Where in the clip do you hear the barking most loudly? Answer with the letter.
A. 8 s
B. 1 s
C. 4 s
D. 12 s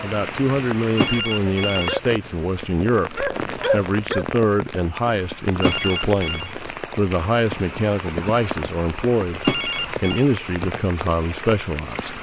C.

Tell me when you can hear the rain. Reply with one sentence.
The rain can be heard from 0.0 to 12.1 s.